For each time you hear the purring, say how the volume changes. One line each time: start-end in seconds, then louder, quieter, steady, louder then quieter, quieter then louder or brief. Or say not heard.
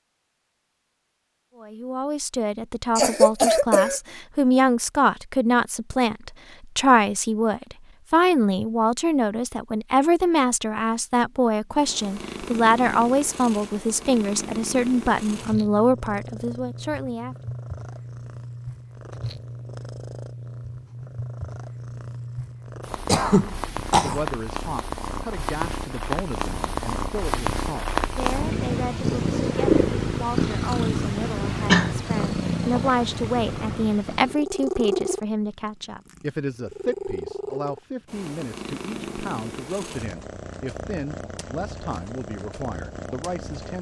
11.7-43.7 louder then quieter.